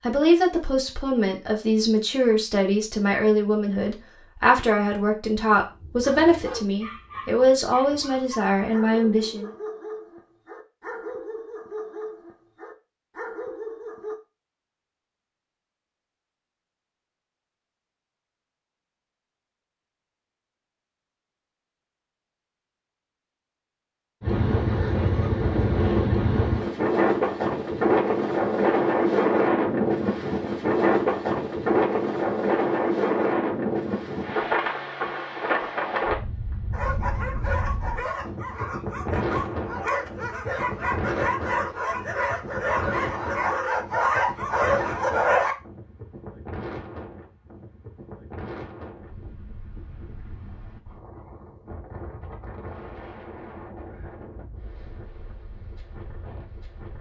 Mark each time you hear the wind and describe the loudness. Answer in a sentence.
The wind can be heard from 24.2 to 56.9 s, getting quieter.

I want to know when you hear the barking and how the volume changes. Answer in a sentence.
The barking can be heard from 5.5 to 14.2 s, at a steady volume; and from 36.7 to 45.5 s, getting louder.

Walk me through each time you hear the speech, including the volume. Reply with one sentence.
You can hear the speech from 0.0 to 9.5 s, at a steady volume.